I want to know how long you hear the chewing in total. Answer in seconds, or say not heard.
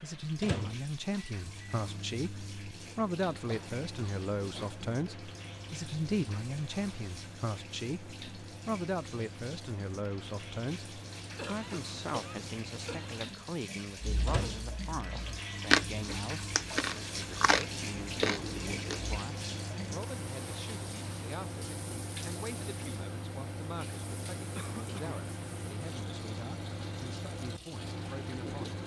5 s.